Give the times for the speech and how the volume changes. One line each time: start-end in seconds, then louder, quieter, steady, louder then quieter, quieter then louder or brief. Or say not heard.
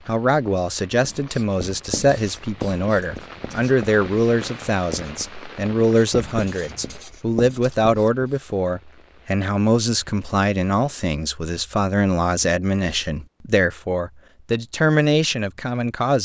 0.1-16.1 steady.